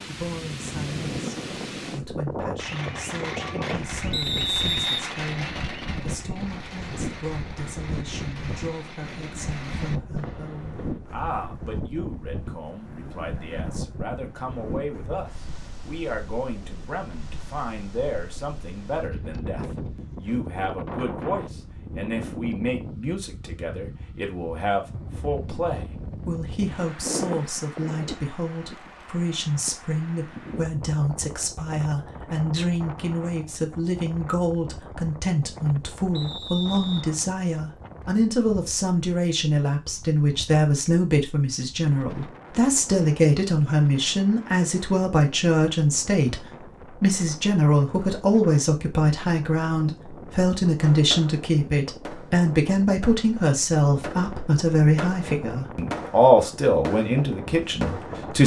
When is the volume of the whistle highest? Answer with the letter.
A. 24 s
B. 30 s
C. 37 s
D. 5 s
D.